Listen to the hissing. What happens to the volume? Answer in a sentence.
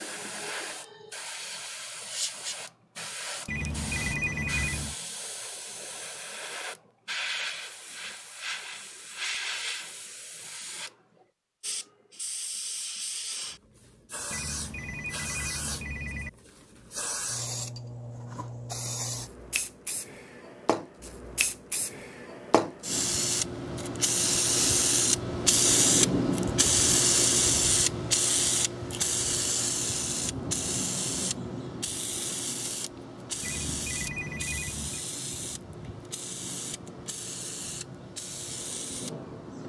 The loudness of the hissing goes up, then down.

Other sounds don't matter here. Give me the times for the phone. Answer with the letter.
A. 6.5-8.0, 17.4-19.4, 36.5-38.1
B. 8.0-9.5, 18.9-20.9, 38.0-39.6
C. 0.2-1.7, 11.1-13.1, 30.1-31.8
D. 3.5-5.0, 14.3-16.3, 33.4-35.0
D.